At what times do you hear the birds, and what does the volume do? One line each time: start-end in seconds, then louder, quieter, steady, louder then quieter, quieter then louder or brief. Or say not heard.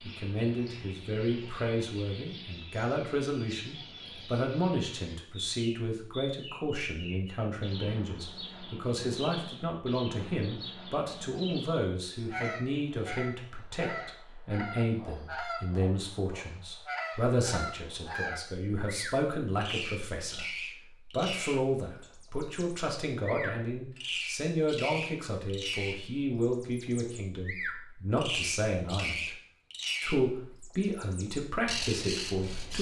0.0-32.7 louder.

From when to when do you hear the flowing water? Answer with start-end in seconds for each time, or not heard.
not heard.